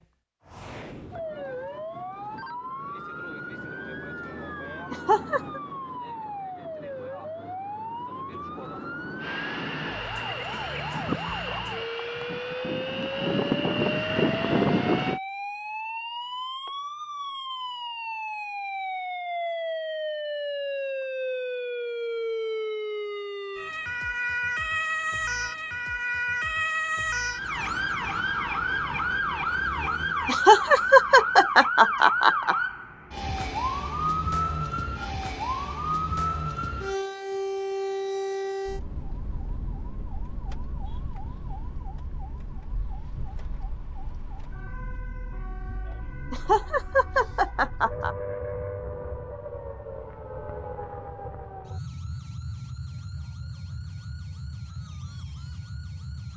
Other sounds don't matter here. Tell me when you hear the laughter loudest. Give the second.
31 s.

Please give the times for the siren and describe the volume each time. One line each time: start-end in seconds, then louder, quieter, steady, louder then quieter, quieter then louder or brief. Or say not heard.
0.0-56.3 louder then quieter.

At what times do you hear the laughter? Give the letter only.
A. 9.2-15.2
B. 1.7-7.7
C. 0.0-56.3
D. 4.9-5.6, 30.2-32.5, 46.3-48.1
D.